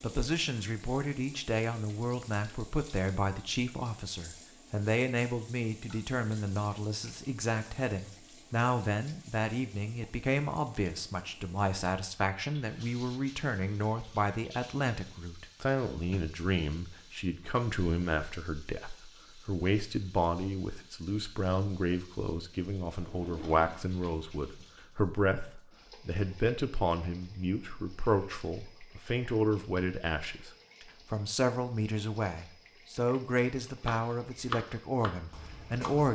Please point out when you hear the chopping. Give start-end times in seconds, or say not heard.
33.8-36.1.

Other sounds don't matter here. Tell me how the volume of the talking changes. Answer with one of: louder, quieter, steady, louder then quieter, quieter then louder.
steady.